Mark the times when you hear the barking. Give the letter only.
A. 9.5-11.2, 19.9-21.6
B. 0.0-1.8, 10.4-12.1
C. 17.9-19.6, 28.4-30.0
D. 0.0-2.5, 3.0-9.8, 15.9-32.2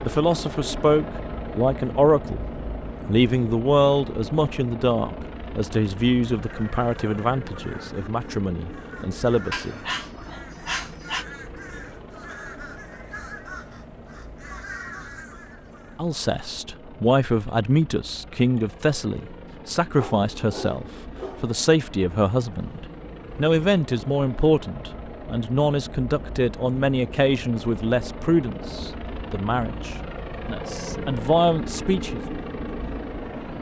A.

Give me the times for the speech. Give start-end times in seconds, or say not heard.
0.0-2.5, 3.0-9.8, 15.9-32.2.